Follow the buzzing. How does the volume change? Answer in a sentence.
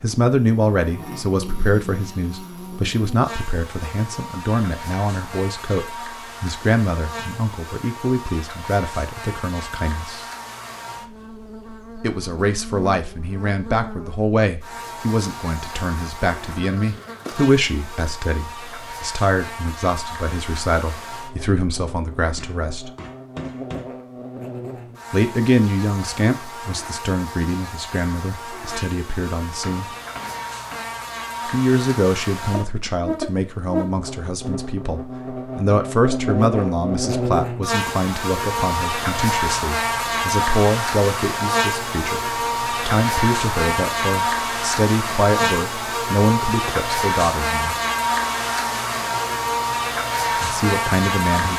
The volume of the buzzing goes up.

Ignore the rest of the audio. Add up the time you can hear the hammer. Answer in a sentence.
You can hear the hammer for 3 seconds altogether.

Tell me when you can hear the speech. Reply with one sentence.
You can hear the speech from 0.0 to 10.2 s, from 12.0 to 22.9 s, from 25.1 to 29.9 s, from 31.4 to 47.8 s and from 50.4 to 51.5 s.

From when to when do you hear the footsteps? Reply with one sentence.
You can't hear the footsteps here.